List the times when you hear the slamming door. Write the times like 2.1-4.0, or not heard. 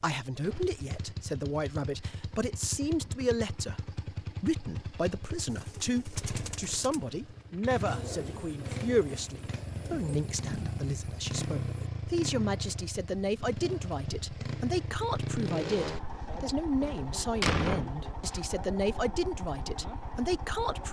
16.8-18.4.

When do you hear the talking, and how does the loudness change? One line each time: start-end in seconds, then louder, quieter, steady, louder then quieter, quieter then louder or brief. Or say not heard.
0.0-20.8 steady.